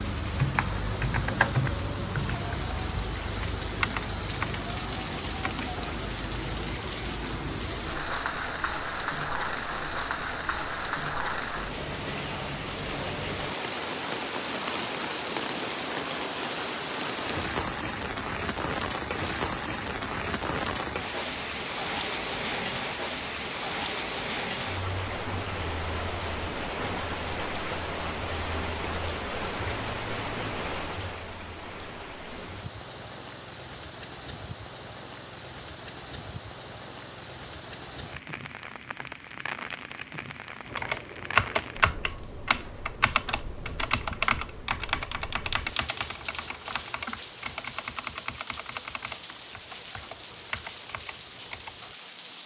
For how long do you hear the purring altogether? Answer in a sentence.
You can't hear the purring here.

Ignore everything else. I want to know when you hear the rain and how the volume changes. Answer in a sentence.
The rain can be heard from 0.0 to 52.4 s, getting quieter.